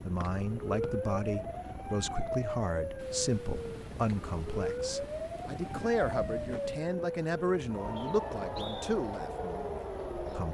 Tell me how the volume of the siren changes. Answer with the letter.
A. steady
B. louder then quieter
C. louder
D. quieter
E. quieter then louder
A.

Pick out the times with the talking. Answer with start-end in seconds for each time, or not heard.
0.1-10.5.